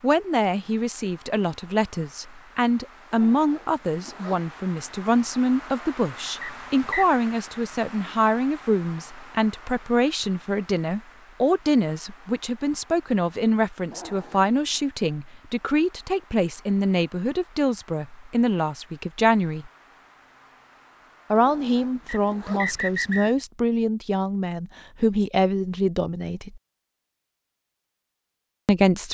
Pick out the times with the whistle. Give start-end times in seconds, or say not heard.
6.4-7.2, 22.1-23.4.